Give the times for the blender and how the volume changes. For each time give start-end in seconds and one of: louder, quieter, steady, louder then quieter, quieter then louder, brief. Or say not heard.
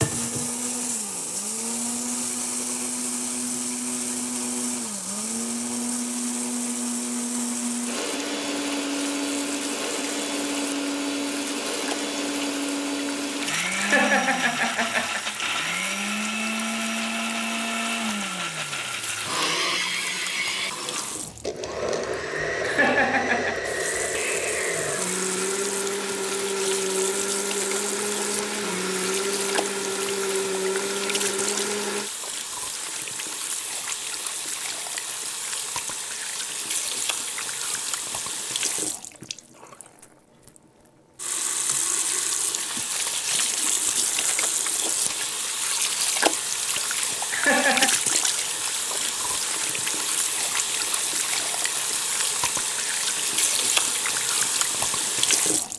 0.0-32.1 steady.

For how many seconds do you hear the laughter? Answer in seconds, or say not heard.
3 s.